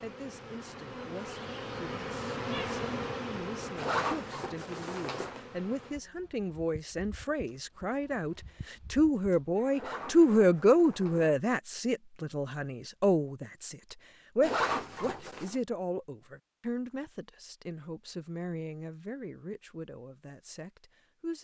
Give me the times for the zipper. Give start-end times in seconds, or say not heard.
3.8-5.4, 9.7-11.3, 14.4-15.6.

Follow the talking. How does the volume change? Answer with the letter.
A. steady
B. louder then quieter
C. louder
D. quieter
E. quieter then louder
B.